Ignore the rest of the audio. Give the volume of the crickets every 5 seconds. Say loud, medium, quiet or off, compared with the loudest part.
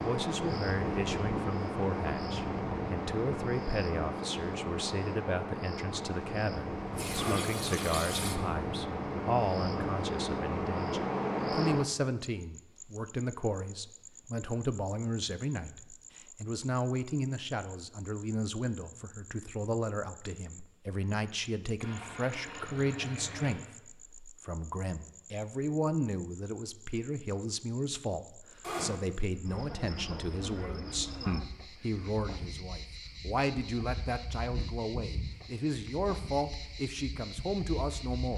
loud, loud, loud, quiet, quiet, quiet, medium, medium.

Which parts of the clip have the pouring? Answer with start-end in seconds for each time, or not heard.
6.9-8.4, 21.8-23.7.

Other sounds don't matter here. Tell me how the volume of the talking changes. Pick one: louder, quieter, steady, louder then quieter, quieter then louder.
steady.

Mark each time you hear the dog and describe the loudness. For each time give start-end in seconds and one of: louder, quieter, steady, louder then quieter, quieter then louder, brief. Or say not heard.
not heard.